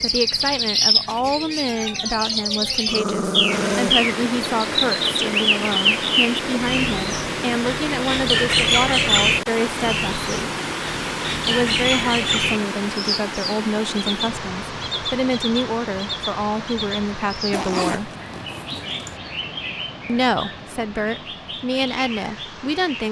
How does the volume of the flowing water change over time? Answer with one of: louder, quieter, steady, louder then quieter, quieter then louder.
quieter.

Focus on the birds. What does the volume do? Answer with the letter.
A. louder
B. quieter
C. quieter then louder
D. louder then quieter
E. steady
B.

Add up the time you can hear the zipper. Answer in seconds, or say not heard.
2 s.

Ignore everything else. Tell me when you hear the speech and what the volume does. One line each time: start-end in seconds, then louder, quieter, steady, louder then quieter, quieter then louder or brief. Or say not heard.
0.0-10.5 steady
11.4-18.1 steady
20.1-23.0 brief.